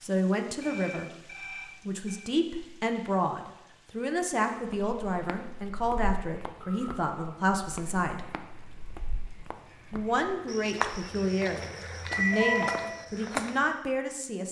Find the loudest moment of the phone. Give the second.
12 s.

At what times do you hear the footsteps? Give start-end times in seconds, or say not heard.
4.7-13.7.